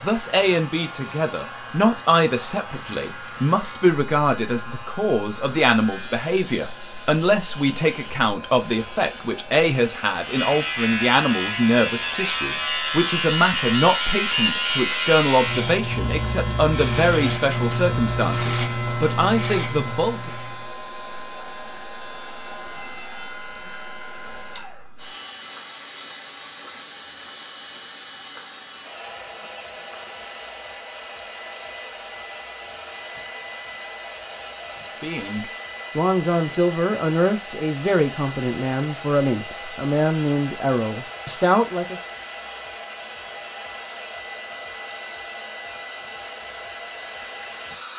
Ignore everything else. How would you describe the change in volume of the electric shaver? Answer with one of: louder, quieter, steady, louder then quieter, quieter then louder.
louder.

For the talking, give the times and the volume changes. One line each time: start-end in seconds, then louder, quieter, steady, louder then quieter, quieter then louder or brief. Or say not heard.
0.0-20.3 steady
35.0-42.0 steady.